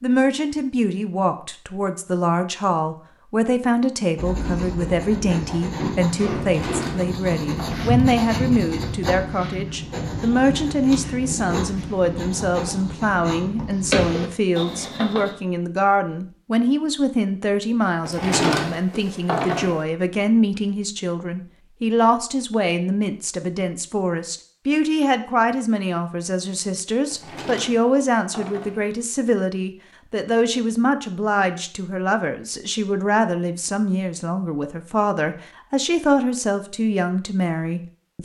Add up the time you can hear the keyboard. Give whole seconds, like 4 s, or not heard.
not heard.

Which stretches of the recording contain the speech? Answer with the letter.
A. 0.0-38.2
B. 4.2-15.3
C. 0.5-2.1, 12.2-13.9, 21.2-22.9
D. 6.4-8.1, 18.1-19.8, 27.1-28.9
A.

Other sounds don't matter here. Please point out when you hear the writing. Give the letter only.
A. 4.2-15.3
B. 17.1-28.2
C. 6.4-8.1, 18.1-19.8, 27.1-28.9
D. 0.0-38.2
A.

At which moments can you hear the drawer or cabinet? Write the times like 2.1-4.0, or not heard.
6.4-8.1, 18.1-19.8, 27.1-28.9.